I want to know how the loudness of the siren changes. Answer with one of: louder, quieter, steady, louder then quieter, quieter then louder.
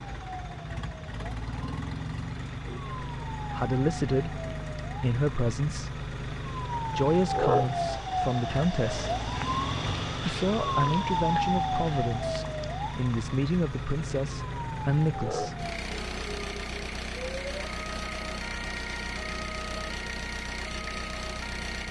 louder then quieter.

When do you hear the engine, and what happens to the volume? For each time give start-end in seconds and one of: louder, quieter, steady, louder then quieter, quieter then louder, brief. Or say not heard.
0.0-21.8 steady.